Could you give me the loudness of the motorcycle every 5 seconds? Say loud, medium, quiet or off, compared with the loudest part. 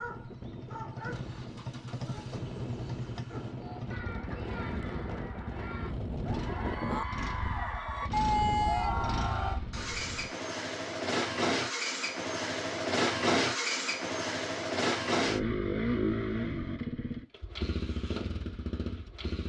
medium, medium, loud, loud.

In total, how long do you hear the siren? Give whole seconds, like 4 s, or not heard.
not heard.